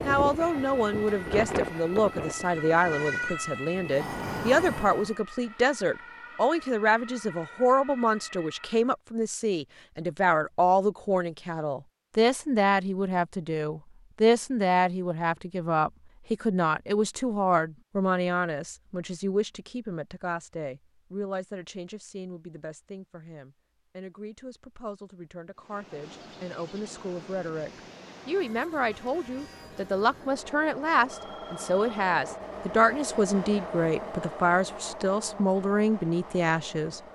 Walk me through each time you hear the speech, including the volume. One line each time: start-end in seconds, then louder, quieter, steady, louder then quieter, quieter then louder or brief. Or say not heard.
0.1-37.0 quieter then louder.